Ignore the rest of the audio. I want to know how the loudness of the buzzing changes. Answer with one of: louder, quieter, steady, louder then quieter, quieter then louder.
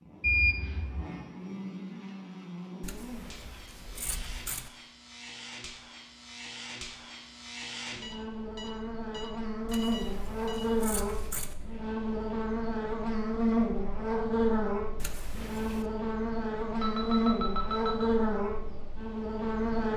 louder.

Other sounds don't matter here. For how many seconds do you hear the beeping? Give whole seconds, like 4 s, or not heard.
5 s.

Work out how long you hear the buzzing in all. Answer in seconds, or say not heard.
20 s.